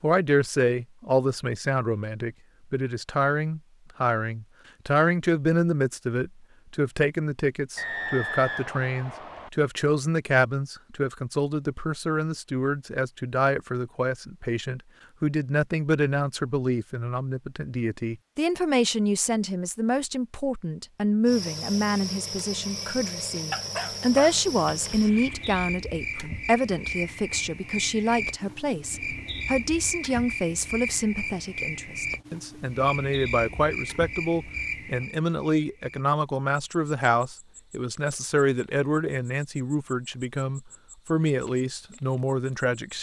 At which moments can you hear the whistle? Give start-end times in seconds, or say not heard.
7.8-9.5.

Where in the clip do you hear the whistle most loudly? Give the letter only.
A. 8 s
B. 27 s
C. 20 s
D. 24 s
A.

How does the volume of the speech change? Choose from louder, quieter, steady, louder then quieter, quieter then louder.
steady.